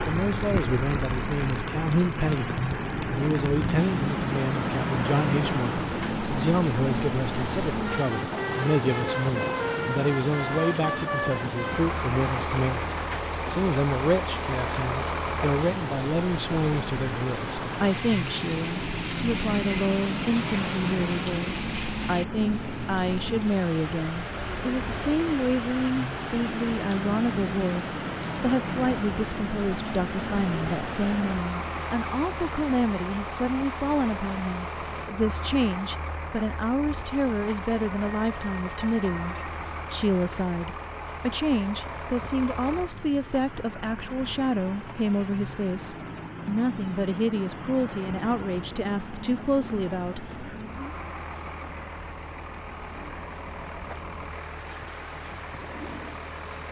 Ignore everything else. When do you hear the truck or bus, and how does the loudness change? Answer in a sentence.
You can hear the truck or bus from 0.0 to 56.6 s, getting quieter.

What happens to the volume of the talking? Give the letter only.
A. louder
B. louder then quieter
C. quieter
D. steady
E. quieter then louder
D.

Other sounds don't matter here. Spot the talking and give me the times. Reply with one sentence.
The talking can be heard from 0.1 to 50.2 s.